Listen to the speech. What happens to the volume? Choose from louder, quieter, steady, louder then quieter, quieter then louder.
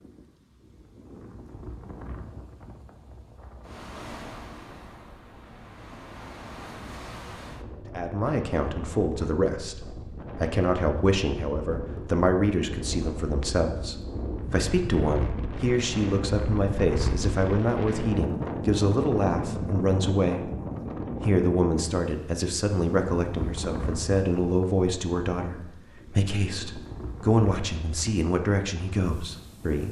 steady.